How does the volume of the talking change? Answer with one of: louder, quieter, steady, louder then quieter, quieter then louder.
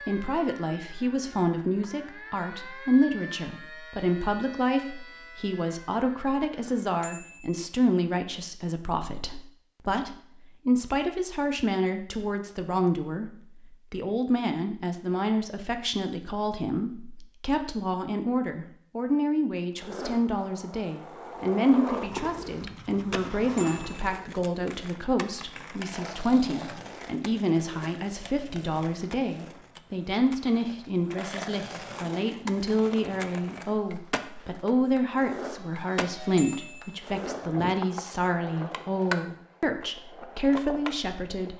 steady.